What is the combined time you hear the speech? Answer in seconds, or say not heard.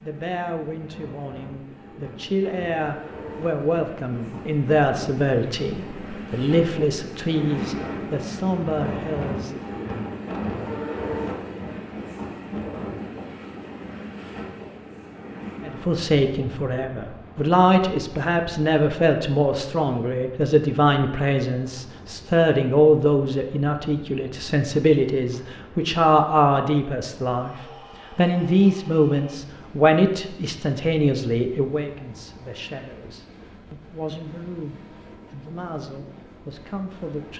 31 s.